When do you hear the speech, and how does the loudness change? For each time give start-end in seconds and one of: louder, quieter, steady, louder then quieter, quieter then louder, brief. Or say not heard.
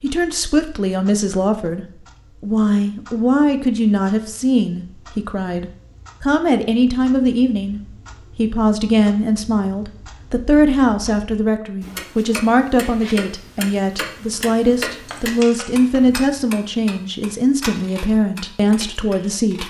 0.0-19.6 steady.